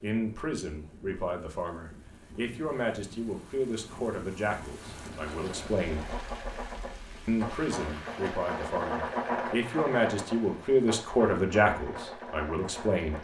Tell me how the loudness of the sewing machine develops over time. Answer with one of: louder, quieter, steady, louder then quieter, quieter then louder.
louder then quieter.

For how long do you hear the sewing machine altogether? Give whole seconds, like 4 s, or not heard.
8 s.